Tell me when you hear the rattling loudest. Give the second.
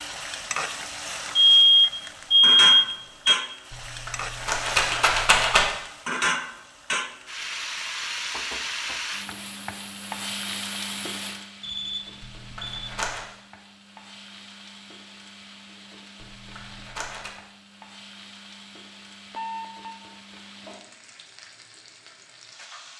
5 s.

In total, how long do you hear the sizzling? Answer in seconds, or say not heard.
23 s.